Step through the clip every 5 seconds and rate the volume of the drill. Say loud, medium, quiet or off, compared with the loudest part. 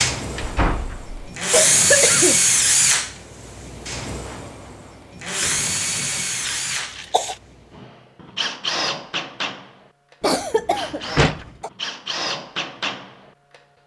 loud, medium, medium.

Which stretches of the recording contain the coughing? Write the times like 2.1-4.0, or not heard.
1.5-2.4, 6.5-7.3, 10.2-11.7.